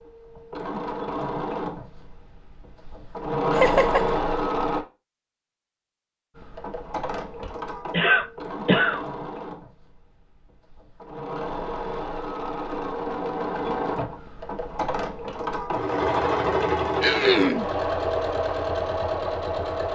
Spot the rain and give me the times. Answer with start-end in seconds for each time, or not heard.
not heard.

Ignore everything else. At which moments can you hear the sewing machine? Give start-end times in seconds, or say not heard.
0.0-4.8, 6.3-19.8.